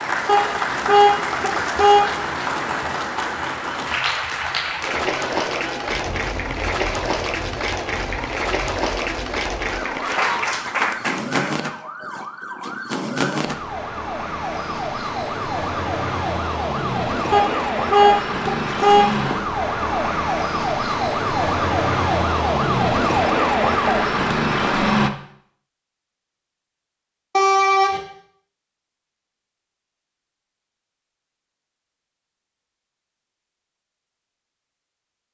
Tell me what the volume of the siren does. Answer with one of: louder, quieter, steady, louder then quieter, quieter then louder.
louder.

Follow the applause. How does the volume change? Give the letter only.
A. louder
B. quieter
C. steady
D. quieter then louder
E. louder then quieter
C.